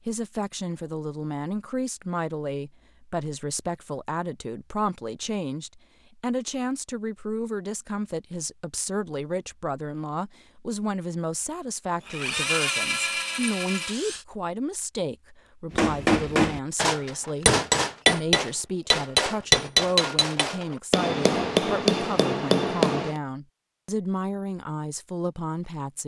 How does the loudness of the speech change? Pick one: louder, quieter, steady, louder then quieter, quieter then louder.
steady.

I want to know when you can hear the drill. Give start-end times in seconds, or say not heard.
12.0-14.2.